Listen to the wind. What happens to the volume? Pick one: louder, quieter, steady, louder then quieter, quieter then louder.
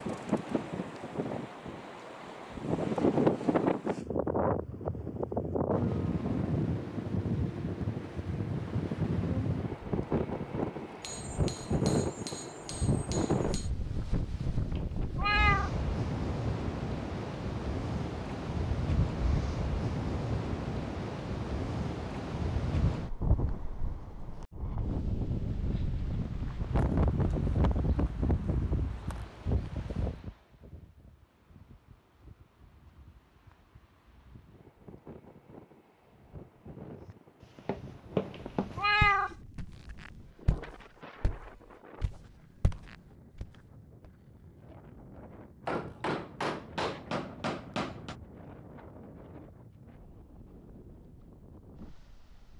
quieter.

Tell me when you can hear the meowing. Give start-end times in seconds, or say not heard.
14.8-15.7, 38.8-39.4.